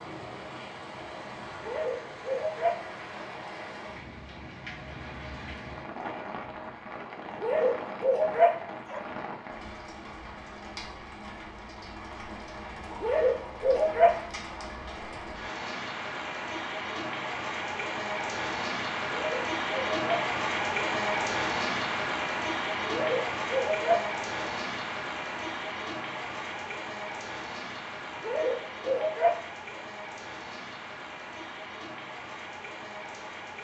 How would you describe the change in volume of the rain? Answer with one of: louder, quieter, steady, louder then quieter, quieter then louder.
louder then quieter.